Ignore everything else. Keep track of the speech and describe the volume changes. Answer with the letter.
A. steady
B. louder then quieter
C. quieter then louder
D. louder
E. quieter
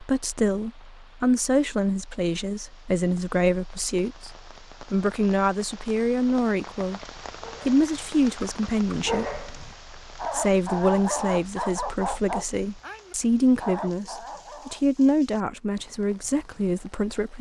A.